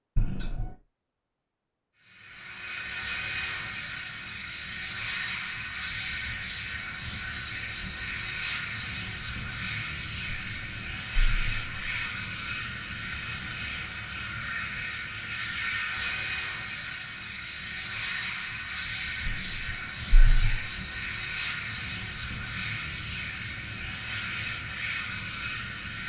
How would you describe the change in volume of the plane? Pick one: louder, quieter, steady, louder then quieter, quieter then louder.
steady.